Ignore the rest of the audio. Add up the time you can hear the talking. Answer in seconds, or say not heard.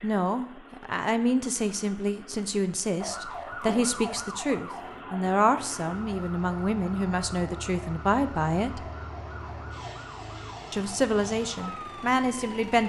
11 s.